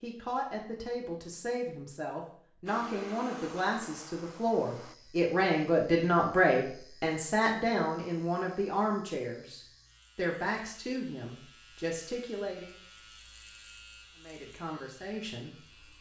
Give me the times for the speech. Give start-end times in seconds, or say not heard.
0.0-12.8, 14.2-15.9.